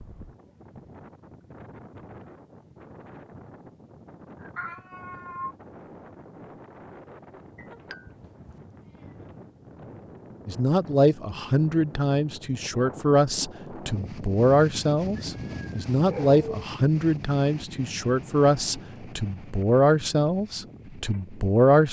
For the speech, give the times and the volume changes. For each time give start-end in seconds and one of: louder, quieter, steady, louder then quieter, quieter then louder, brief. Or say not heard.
10.4-21.8 steady.